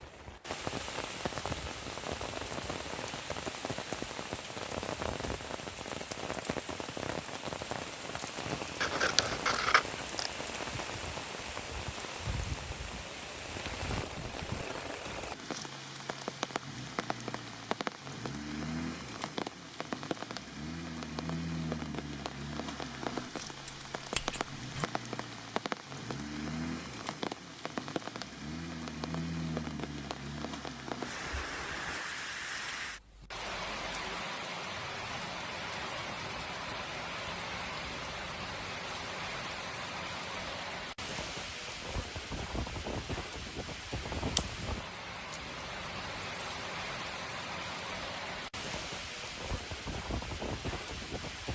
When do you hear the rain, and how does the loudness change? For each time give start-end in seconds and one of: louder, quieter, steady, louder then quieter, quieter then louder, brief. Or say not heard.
0.0-51.4 steady.